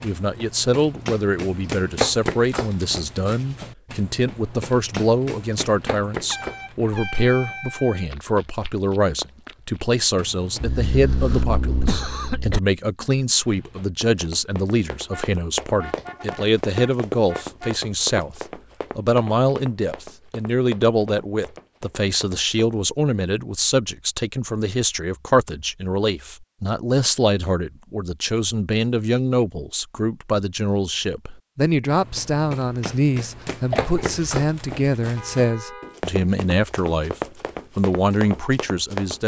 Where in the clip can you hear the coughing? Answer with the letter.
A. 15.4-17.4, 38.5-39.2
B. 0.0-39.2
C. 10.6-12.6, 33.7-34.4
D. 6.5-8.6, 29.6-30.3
C.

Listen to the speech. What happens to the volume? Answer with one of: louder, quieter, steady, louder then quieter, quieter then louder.
steady.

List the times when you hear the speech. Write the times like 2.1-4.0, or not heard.
0.0-39.2.